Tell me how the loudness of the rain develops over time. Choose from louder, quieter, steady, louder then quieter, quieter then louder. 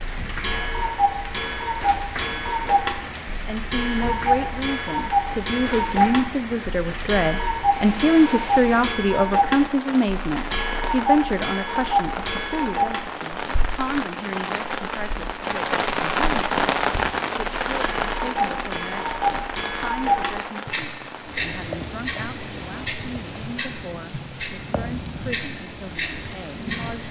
louder then quieter.